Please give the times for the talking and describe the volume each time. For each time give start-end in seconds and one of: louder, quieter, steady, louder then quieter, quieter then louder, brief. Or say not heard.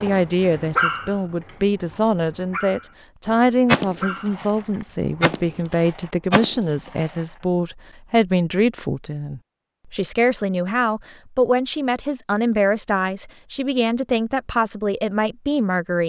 0.0-16.0 steady.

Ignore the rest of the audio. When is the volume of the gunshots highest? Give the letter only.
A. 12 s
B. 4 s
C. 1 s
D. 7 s
B.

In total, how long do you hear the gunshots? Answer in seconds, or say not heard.
3 s.